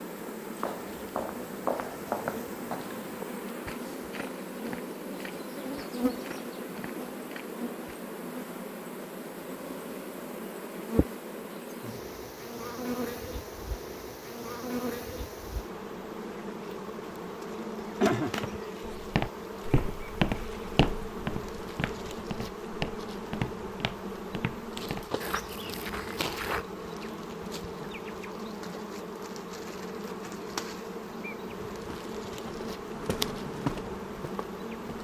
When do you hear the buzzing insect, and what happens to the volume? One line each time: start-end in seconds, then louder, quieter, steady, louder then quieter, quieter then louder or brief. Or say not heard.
0.0-34.9 steady.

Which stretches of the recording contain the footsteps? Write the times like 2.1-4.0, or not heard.
0.4-8.0, 18.9-26.6, 31.7-34.9.